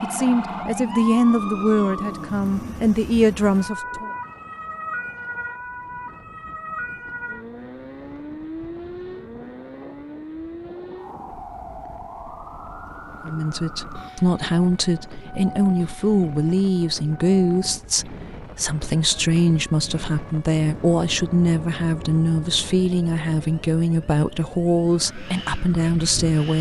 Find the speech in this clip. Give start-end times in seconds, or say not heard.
0.0-4.1, 13.2-26.5.